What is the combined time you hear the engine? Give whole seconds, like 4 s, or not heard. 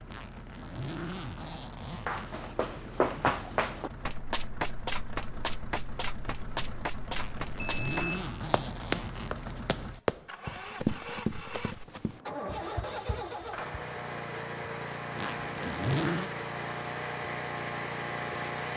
19 s.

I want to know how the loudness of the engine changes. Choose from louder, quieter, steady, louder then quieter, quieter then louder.
louder.